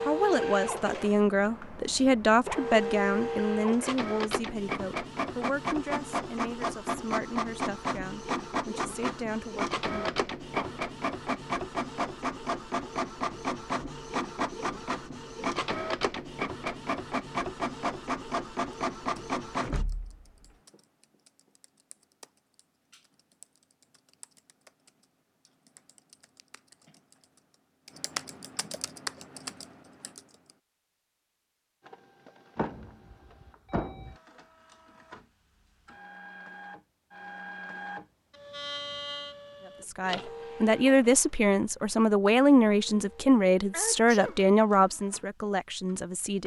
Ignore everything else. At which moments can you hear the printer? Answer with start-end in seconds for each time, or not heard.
0.0-19.9, 31.8-46.4.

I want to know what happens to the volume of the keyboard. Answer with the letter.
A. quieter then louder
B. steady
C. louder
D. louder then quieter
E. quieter
C.